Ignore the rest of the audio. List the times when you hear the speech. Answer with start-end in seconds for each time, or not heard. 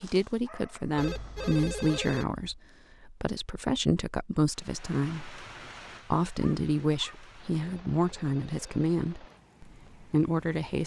0.0-5.3, 6.1-10.8.